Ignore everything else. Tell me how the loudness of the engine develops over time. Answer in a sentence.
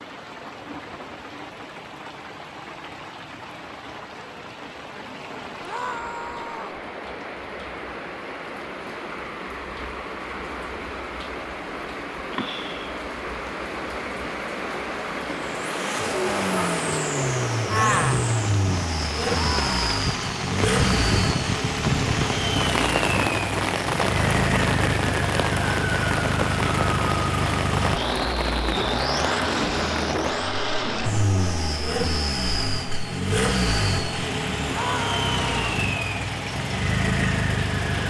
The loudness of the engine stays about the same.